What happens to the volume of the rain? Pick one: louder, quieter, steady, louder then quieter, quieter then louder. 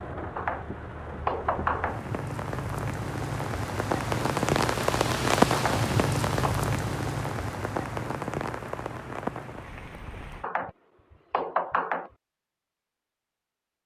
louder then quieter.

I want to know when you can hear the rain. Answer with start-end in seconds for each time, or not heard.
0.0-10.5.